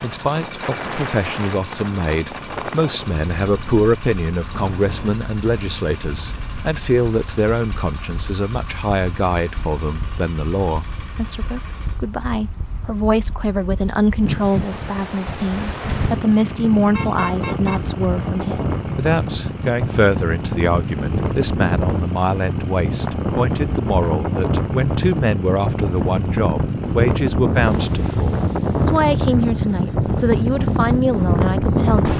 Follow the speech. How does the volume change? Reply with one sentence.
The volume of the speech stays about the same.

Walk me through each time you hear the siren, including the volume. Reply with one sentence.
You can't hear the siren here.